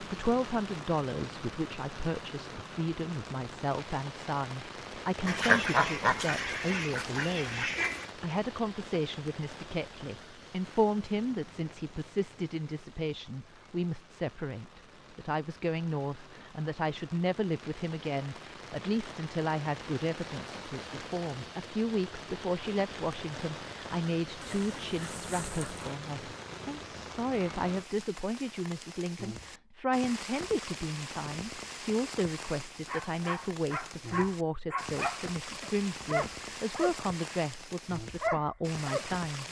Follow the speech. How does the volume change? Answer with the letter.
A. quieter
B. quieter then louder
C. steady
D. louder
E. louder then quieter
C.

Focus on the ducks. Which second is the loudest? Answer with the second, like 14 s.
6 s.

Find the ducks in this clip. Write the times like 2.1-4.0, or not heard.
5.2-8.1, 24.4-25.9.